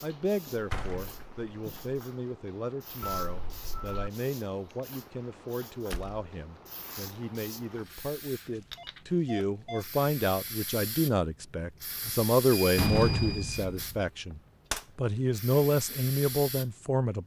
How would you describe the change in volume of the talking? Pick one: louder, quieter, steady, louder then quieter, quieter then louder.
louder.